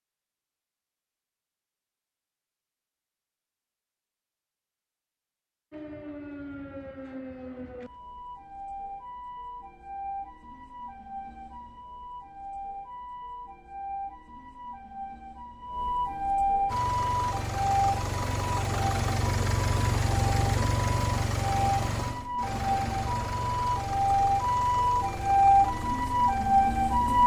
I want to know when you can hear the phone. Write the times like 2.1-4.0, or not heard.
not heard.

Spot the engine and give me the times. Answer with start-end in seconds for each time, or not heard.
16.6-27.2.